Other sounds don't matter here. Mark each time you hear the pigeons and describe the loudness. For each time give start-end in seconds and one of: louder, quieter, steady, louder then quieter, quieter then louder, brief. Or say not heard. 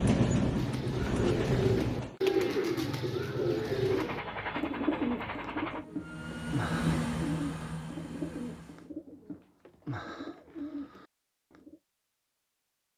0.5-11.8 quieter.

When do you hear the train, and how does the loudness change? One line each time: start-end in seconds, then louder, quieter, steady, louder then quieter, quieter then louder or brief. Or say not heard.
0.0-2.1 brief
3.5-8.9 louder then quieter.